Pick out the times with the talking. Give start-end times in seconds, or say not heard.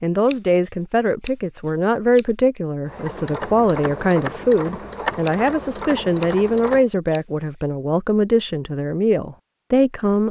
0.0-10.2.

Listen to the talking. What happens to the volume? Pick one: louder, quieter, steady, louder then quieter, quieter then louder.
steady.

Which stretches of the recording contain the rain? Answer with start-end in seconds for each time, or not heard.
not heard.